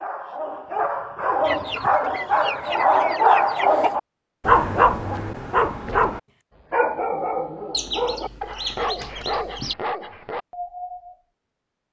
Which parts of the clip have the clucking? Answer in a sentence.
The clucking can be heard from 1.4 to 4.0 s and from 7.7 to 9.8 s.